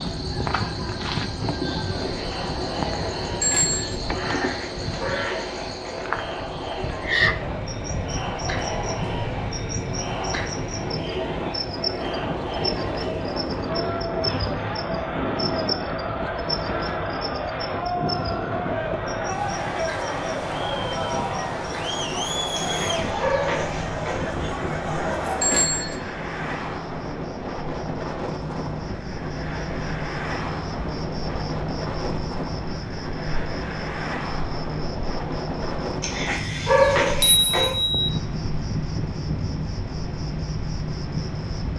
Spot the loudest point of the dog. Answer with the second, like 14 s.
37 s.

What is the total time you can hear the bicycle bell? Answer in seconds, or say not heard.
2 s.